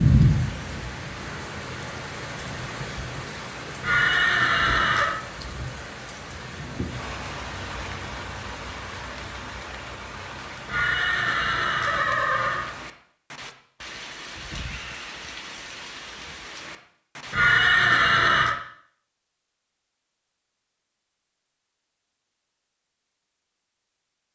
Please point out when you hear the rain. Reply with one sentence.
The rain can be heard from 0.0 to 17.4 s.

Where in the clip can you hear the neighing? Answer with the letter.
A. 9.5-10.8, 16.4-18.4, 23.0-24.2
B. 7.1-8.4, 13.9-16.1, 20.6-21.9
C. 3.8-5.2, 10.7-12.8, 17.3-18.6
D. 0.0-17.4
C.